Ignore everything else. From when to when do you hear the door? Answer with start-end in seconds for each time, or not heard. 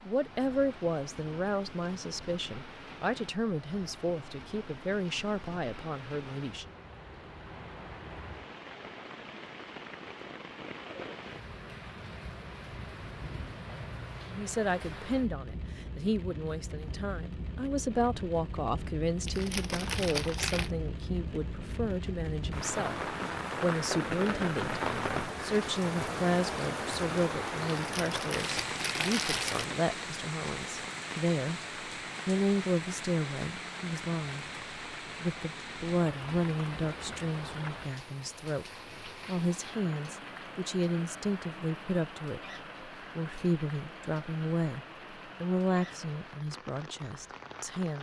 not heard.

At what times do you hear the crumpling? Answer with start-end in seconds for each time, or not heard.
19.2-20.7, 27.6-29.6.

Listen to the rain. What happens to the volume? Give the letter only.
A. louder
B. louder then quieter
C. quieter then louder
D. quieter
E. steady
B.